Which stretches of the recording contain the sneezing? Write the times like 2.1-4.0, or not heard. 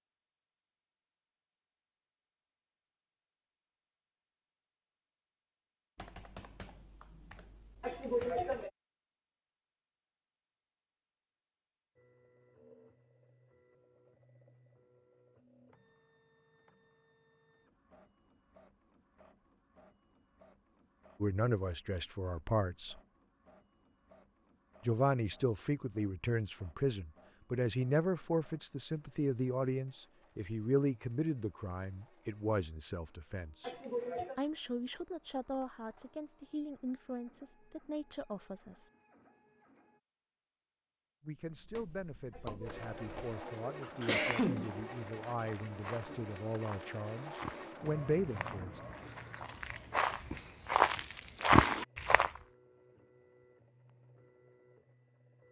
7.8-8.7, 33.6-34.4, 42.4-45.0.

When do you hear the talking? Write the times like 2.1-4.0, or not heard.
21.2-23.0, 24.9-33.8, 34.4-38.9, 41.2-48.8.